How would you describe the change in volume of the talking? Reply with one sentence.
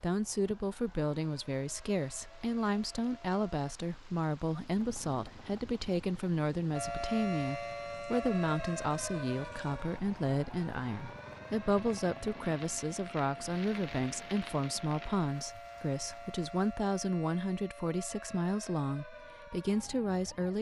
The loudness of the talking stays about the same.